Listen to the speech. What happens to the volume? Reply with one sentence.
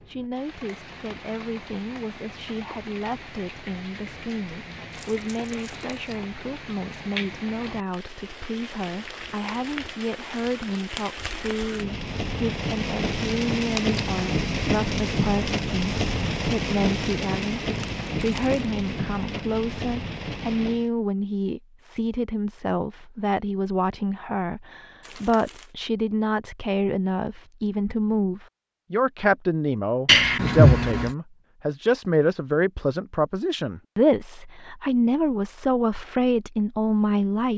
The volume of the speech goes up.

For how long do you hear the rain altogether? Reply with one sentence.
The rain can be heard for 21 seconds in total.